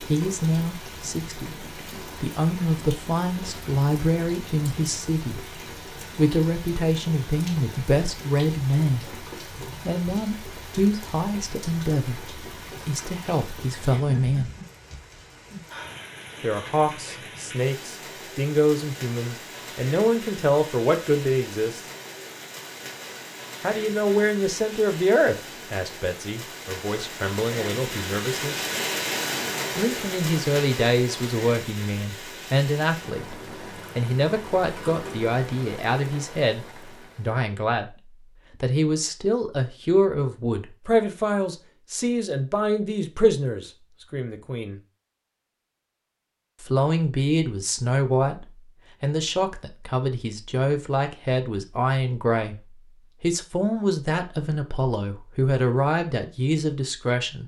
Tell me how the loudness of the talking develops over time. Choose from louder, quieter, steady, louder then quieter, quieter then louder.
steady.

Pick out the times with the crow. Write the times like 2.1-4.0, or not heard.
not heard.